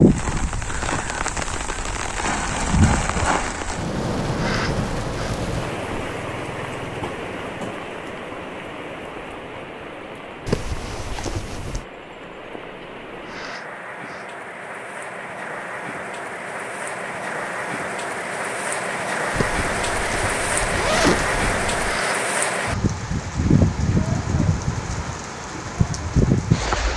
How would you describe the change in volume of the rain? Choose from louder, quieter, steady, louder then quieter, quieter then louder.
quieter then louder.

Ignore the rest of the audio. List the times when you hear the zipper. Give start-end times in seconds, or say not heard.
10.4-11.8, 19.3-22.0.